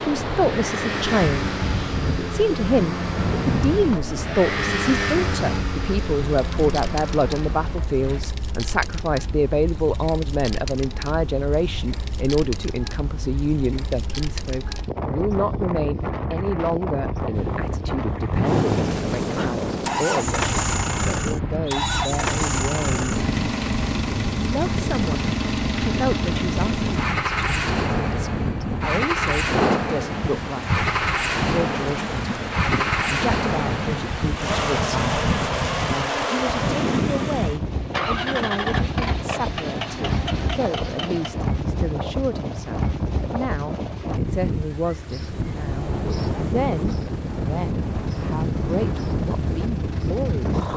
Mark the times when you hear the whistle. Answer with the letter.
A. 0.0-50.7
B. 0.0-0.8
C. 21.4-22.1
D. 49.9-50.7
C.